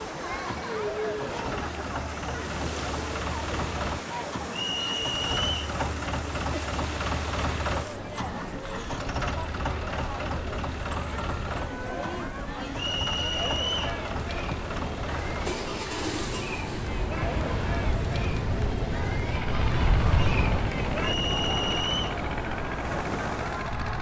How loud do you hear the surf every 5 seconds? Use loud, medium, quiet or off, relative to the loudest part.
medium, medium, medium, loud, loud.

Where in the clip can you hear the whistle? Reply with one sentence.
You can hear the whistle from 4.5 to 5.6 s, from 12.8 to 13.9 s and from 21.0 to 22.1 s.